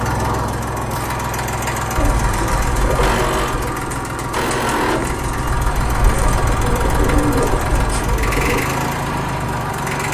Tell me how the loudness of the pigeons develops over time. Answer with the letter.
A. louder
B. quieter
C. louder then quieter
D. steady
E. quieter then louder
E.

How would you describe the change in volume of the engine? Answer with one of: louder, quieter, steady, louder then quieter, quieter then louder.
steady.